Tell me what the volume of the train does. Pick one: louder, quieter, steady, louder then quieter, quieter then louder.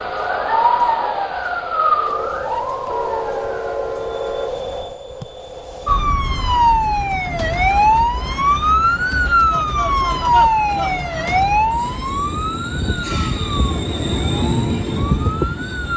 quieter then louder.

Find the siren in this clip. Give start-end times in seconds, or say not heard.
0.0-3.8, 5.8-15.9.